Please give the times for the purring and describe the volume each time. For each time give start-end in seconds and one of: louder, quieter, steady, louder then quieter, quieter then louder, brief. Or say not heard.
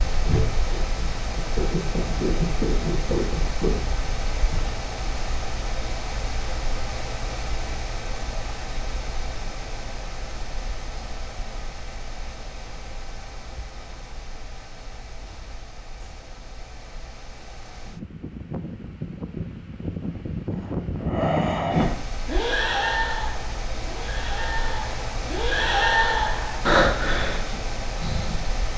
0.0-4.8 louder.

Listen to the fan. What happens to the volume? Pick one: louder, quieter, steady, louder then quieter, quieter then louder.
quieter then louder.